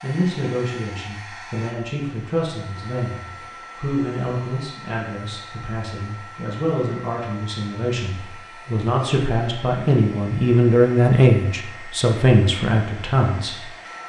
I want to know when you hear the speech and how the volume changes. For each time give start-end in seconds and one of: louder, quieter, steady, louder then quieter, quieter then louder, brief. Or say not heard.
0.0-13.7 louder.